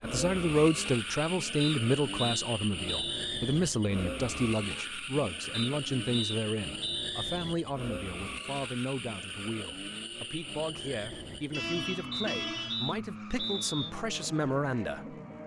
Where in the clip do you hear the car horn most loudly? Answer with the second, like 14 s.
12 s.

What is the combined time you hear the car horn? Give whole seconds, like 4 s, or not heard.
2 s.